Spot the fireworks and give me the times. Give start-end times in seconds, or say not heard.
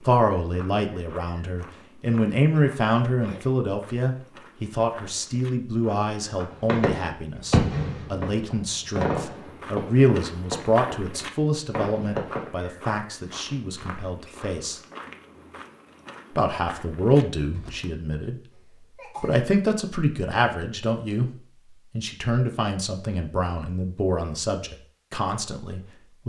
6.5-12.4.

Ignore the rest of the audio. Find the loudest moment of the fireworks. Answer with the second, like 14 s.
8 s.